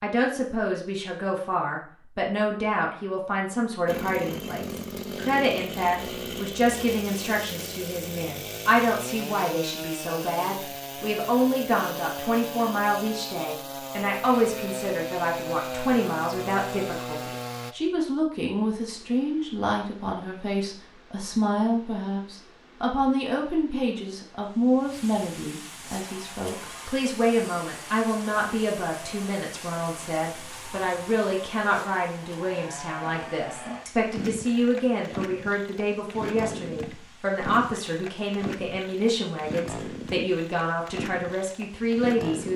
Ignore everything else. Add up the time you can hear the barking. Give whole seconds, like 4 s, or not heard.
not heard.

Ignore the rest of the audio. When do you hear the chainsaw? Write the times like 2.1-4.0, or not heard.
3.9-17.8, 25.9-42.5.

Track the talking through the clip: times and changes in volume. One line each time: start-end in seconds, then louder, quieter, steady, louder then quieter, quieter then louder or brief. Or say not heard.
0.0-42.5 steady.